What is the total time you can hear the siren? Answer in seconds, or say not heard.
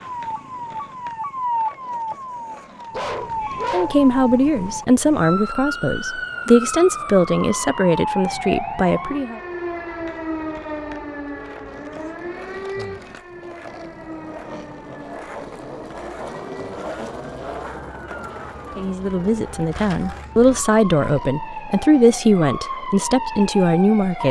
24 s.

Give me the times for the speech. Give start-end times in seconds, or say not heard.
3.7-9.4, 18.8-24.2.